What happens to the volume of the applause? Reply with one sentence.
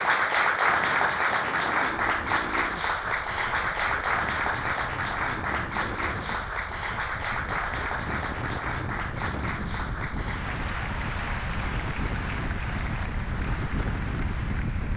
The loudness of the applause goes down.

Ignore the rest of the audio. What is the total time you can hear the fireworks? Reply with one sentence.
You can't hear the fireworks here.